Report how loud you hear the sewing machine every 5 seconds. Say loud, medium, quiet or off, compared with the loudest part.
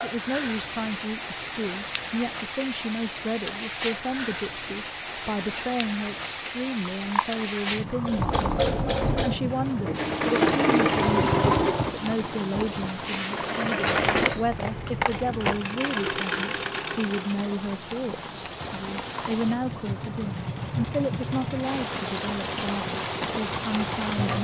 off, loud, loud, medium, medium.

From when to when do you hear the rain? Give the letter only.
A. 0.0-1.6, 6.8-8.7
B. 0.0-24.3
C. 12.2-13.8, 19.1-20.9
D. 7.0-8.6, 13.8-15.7
B.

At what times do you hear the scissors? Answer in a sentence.
You can hear the scissors from 7.0 to 8.6 s and from 13.8 to 15.7 s.